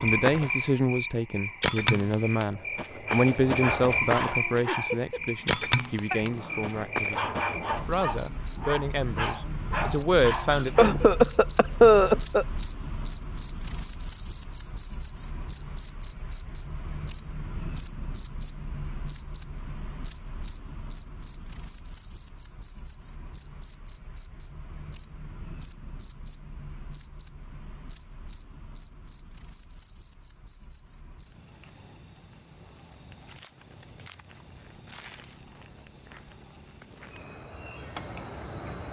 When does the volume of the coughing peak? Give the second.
12 s.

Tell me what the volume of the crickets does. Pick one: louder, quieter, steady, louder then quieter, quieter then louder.
quieter.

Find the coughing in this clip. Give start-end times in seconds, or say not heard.
10.5-12.4.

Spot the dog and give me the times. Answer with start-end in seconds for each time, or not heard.
3.0-11.1.